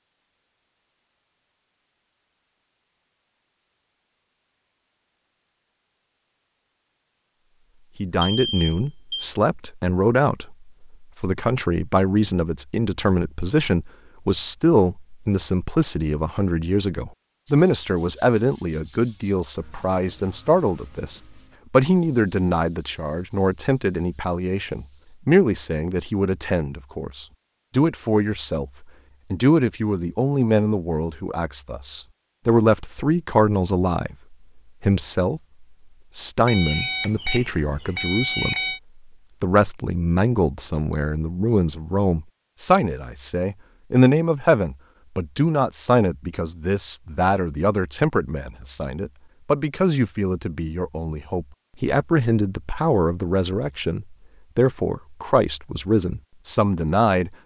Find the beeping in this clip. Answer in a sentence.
You can hear the beeping from 8.2 to 9.3 s and from 36.5 to 38.8 s.